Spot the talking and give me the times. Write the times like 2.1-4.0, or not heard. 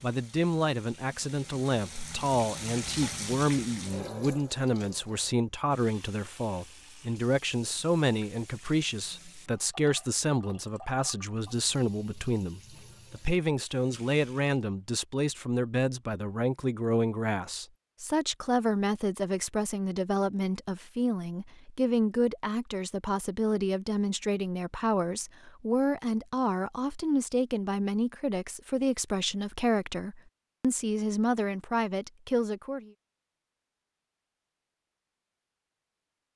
0.0-32.9.